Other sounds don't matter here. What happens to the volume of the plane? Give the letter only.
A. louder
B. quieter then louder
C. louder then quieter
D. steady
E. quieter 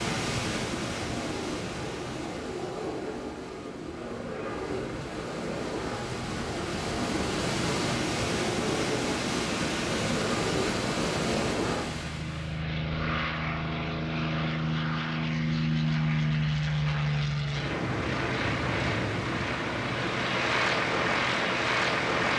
A.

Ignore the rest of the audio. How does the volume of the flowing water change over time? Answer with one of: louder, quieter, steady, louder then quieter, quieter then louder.
quieter then louder.